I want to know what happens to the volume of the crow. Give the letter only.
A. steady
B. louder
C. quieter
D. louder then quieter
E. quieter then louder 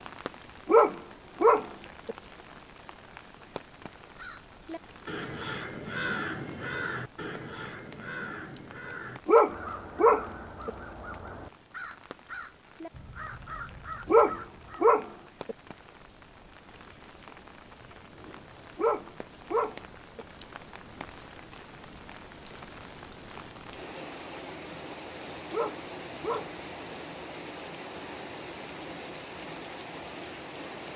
C.